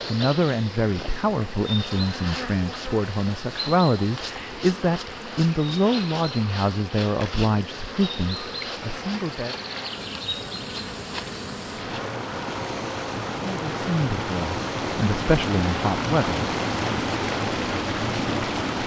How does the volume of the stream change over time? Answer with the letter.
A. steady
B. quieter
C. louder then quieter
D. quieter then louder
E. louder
E.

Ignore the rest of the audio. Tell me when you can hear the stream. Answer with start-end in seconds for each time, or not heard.
0.0-18.8.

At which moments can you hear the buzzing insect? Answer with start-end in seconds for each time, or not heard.
0.0-18.6.